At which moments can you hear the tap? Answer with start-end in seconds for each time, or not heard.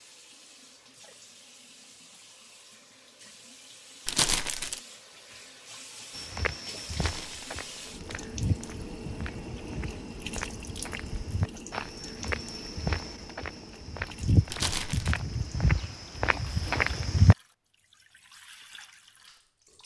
0.0-19.8.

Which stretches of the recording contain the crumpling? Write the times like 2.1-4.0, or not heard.
4.0-4.8, 6.9-8.3, 14.5-15.2.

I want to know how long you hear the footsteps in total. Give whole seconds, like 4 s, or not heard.
11 s.